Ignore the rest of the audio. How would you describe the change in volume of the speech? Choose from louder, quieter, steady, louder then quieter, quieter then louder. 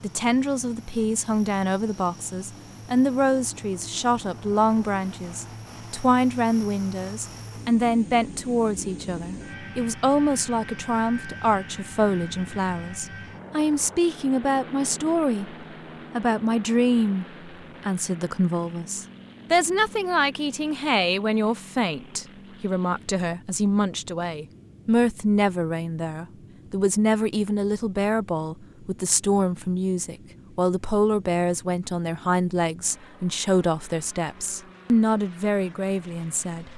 steady.